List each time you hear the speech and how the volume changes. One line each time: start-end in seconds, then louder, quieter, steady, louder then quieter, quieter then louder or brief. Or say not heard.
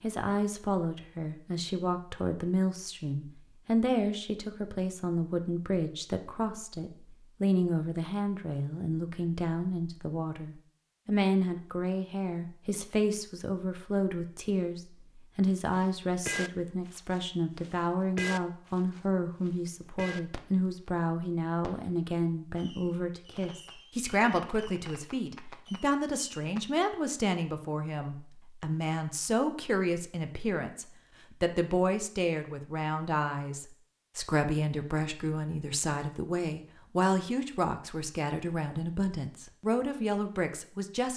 0.0-41.1 steady.